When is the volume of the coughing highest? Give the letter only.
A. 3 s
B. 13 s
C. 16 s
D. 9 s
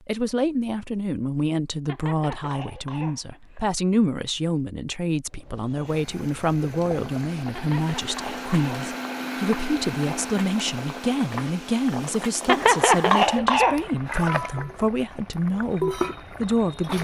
B.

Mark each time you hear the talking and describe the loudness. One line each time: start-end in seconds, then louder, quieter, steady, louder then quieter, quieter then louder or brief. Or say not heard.
0.1-16.9 steady.